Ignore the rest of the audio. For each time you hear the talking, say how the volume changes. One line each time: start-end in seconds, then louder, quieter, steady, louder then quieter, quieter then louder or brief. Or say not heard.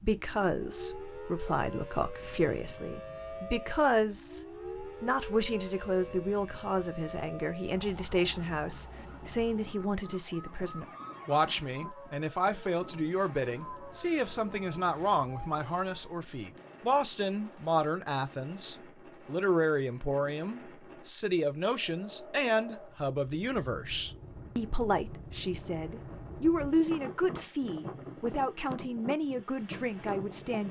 0.0-4.4 quieter then louder
5.0-30.6 steady.